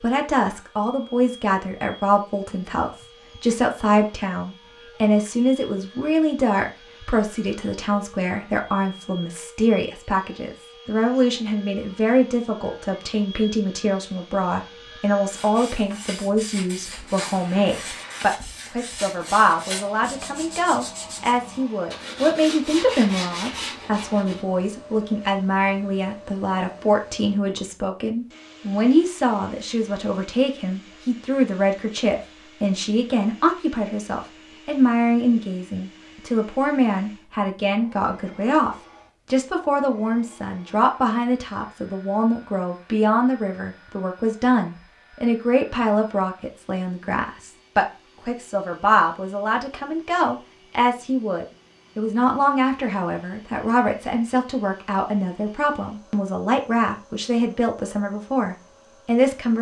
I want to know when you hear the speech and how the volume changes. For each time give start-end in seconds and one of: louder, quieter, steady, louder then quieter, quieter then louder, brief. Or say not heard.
0.0-59.5 steady.